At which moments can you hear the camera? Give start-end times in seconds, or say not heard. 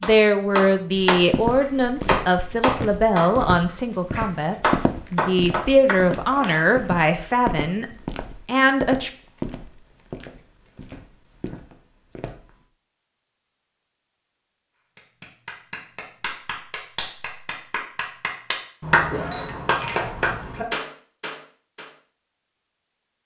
18.8-20.8.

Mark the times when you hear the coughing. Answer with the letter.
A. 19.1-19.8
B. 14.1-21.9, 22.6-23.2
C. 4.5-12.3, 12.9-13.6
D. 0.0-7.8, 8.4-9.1
A.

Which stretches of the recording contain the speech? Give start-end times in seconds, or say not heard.
0.0-7.8, 8.4-9.1.